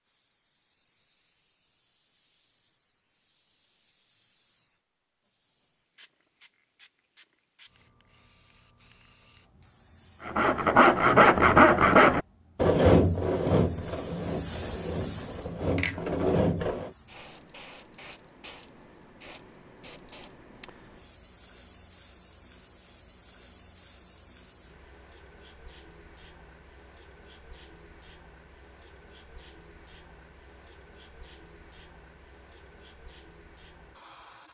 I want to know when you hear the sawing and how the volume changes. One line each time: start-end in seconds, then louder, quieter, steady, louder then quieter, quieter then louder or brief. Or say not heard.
10.2-16.9 quieter then louder.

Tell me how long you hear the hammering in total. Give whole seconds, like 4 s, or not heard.
not heard.